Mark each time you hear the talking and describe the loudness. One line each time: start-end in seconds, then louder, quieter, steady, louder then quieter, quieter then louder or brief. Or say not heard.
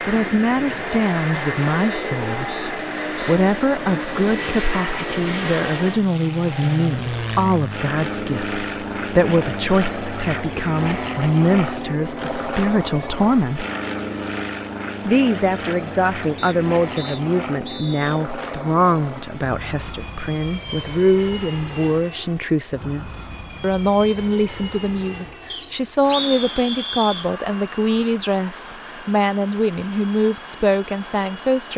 0.1-13.7 steady
15.1-31.7 steady.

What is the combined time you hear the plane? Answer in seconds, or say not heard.
32 s.